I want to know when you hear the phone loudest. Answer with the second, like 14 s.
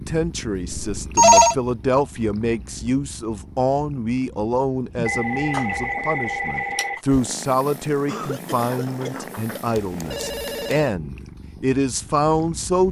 1 s.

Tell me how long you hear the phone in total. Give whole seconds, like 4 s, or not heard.
4 s.